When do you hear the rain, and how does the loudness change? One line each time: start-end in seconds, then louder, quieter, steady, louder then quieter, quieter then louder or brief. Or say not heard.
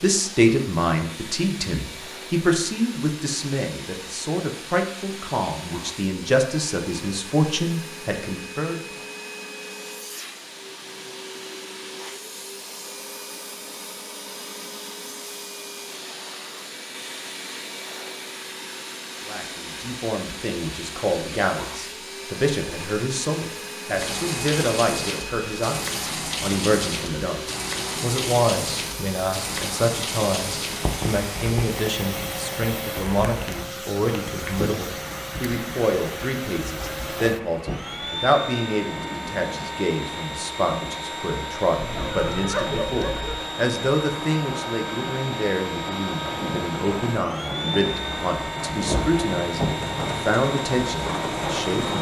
23.9-51.9 quieter then louder.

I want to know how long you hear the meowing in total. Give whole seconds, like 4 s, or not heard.
2 s.